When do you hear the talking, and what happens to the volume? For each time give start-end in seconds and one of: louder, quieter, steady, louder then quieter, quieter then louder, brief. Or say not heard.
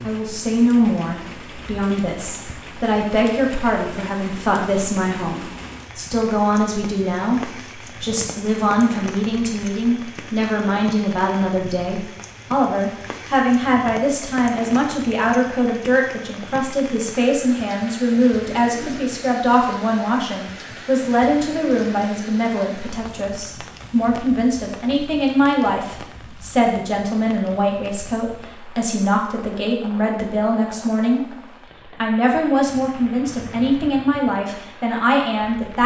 0.0-35.8 steady.